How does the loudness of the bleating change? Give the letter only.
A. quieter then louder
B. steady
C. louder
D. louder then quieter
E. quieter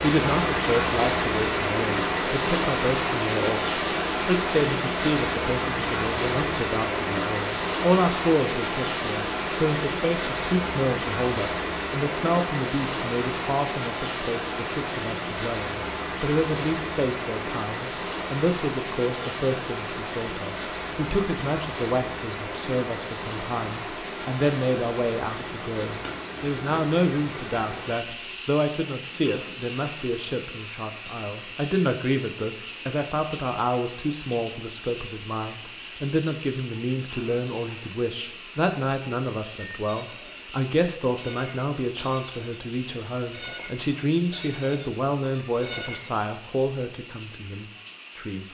C.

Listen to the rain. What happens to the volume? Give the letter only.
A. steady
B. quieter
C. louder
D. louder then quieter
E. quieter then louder
B.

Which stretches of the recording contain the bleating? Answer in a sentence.
The bleating can be heard from 39.7 to 46.1 s.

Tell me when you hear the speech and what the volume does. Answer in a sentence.
The speech can be heard from 0.0 to 48.4 s, at a steady volume.